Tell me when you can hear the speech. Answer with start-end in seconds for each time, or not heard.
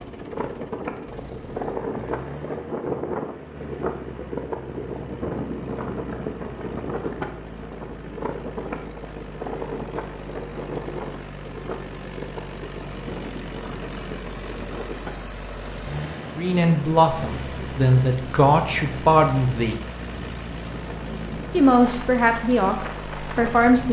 16.4-19.8, 21.5-23.8.